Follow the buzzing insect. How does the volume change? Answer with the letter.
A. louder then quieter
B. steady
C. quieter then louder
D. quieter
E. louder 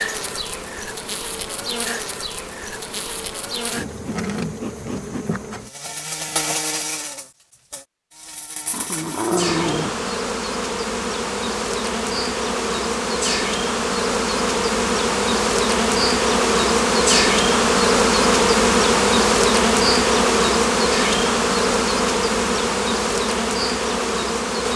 E.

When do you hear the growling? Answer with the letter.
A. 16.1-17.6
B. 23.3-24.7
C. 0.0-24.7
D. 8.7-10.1
D.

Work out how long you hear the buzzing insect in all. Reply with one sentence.
The buzzing insect can be heard for 25 seconds in total.